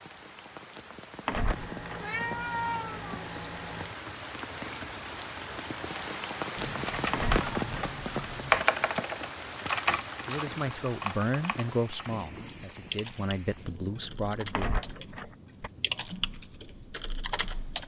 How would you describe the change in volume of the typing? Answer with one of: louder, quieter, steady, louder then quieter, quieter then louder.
quieter then louder.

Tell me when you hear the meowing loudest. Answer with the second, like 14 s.
3 s.